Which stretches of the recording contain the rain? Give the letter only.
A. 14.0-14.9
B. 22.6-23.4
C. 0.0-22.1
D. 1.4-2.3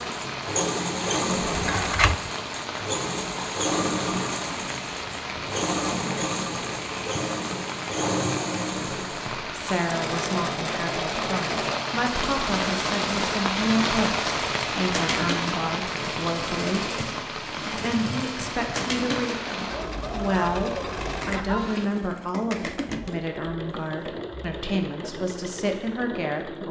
C.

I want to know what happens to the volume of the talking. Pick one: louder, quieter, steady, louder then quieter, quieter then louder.
steady.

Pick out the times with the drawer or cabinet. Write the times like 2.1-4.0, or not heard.
1.4-2.3.